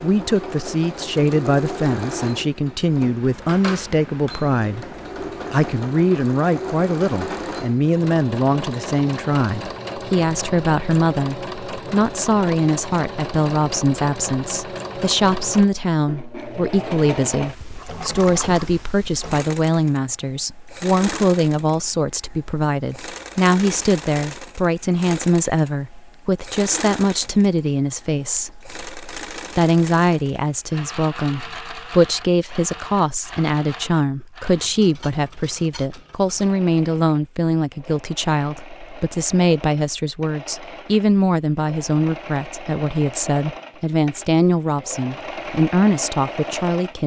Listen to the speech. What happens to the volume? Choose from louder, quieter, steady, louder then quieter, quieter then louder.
steady.